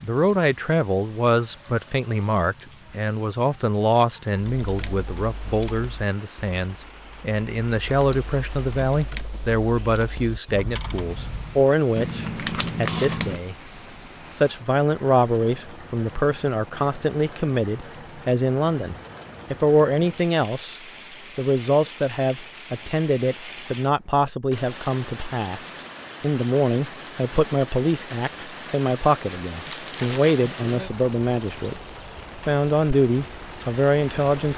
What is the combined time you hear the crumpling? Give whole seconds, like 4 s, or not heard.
2 s.